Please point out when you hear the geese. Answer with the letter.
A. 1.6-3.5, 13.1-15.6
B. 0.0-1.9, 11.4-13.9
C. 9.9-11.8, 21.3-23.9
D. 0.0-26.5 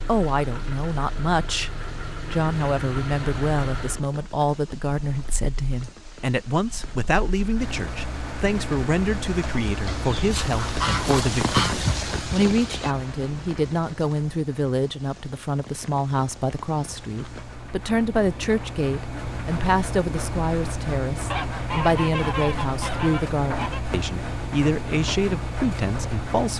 C.